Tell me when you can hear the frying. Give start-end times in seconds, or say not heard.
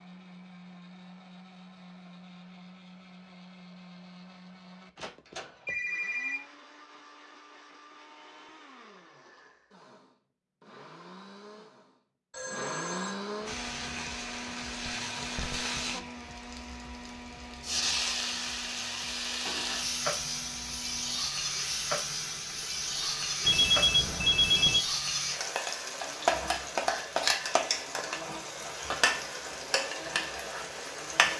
13.4-31.3.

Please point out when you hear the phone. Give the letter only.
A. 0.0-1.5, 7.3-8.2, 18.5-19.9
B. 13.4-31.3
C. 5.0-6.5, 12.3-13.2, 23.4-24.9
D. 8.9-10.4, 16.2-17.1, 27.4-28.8
C.